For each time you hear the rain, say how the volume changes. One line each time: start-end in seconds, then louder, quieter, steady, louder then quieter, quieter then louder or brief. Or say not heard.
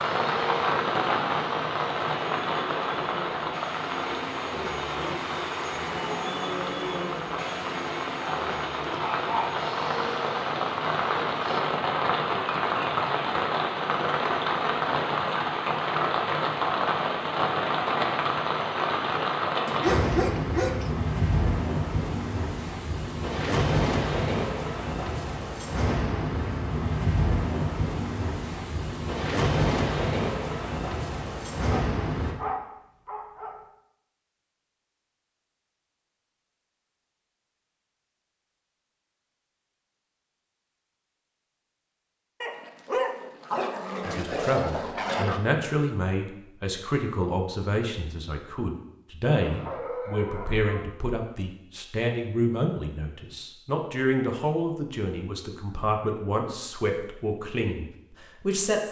0.0-32.4 steady.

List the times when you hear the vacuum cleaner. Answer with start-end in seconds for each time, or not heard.
0.0-11.7.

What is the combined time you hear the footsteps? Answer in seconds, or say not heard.
not heard.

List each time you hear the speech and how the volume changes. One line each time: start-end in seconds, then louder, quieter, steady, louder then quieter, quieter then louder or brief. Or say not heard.
44.0-58.8 steady.